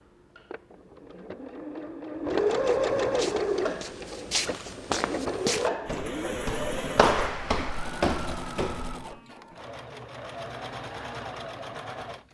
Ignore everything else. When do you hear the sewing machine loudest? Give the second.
3 s.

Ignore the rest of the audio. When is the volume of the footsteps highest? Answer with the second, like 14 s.
7 s.